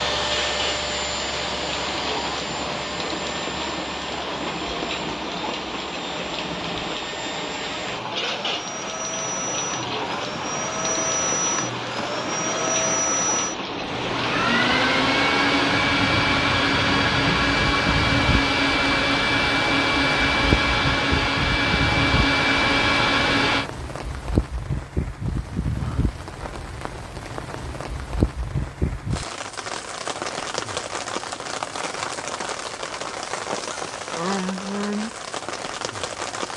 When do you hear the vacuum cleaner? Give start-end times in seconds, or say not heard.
0.0-23.7.